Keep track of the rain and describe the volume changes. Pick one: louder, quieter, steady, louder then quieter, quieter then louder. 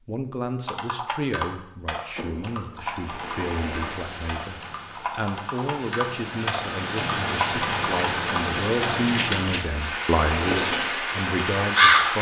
louder.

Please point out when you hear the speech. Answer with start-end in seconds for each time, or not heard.
0.1-12.1.